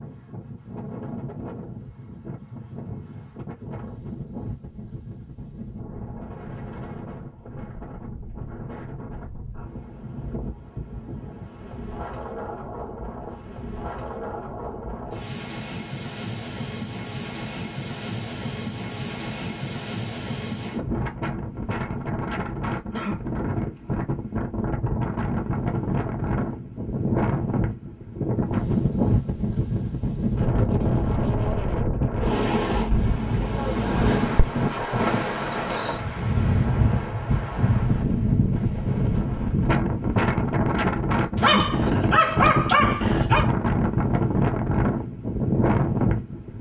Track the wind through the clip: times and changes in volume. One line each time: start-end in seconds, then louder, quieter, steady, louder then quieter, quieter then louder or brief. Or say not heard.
0.0-46.5 louder.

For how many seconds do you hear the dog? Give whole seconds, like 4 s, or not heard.
2 s.